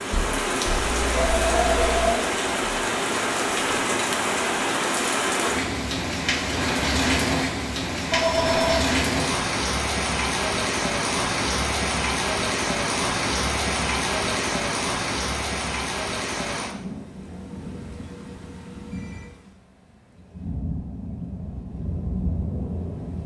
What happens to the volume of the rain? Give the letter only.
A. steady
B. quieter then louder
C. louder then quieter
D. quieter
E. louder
D.